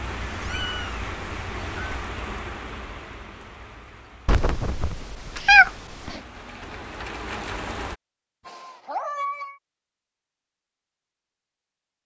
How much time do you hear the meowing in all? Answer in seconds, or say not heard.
5 s.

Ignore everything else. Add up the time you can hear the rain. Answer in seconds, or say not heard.
8 s.